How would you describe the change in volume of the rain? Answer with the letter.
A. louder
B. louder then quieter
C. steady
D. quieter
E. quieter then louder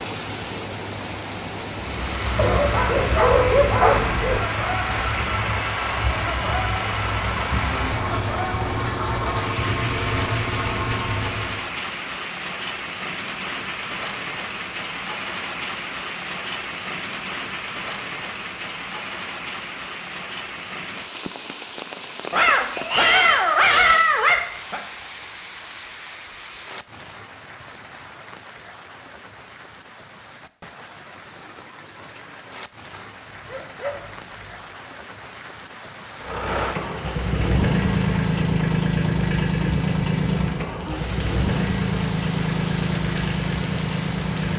E.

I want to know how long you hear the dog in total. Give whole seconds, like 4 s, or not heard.
6 s.